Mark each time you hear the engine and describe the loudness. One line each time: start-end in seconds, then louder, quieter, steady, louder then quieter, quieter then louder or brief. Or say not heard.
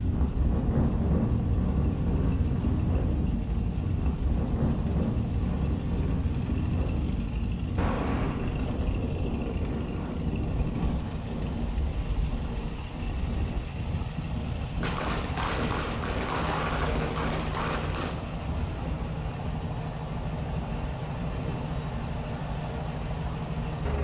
0.0-23.9 louder.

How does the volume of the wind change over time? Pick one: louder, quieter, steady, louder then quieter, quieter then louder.
quieter.